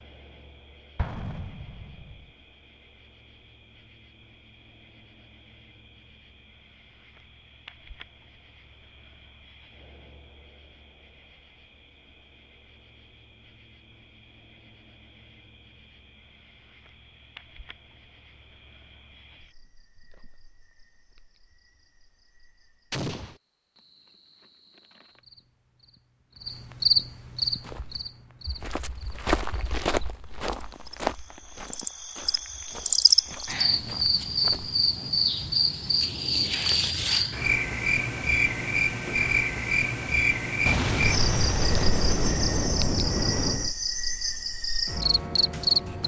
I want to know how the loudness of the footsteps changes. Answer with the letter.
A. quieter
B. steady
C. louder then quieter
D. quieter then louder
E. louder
C.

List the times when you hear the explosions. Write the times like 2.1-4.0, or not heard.
0.9-2.1, 22.9-23.4, 40.6-43.7.